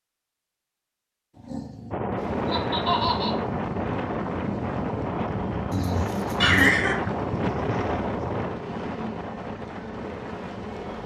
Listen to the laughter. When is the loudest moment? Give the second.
7 s.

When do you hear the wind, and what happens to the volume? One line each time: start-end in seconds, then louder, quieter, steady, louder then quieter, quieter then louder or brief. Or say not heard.
1.9-11.0 quieter.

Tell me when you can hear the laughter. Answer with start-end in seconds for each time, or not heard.
2.5-3.4, 6.4-7.0.